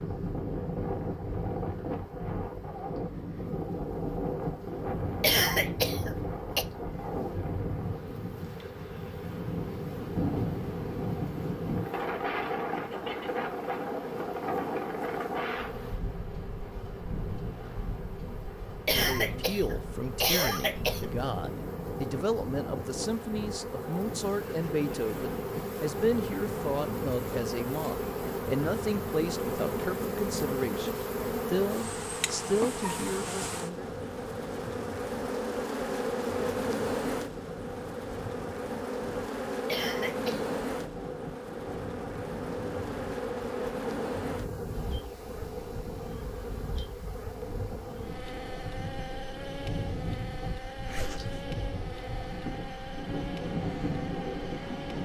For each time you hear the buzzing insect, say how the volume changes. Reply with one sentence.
You can hear the buzzing insect from 0.0 to 55.0 s, getting louder then quieter.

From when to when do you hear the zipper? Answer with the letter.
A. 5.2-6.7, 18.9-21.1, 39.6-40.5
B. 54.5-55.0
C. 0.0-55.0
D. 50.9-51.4
D.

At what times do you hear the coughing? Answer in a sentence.
You can hear the coughing from 5.2 to 6.7 s, from 18.9 to 21.1 s and from 39.6 to 40.5 s.